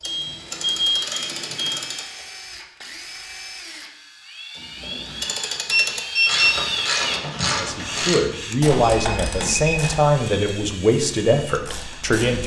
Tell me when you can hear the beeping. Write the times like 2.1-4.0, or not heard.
0.0-1.9, 5.7-6.5, 8.9-9.8.